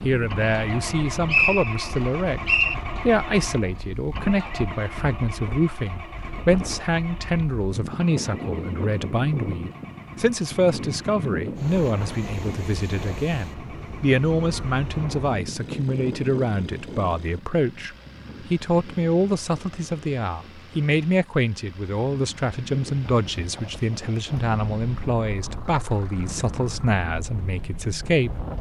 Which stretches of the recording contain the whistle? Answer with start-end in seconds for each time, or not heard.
0.8-2.8.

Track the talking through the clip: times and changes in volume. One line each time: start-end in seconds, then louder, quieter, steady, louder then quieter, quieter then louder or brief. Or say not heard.
0.0-28.4 steady.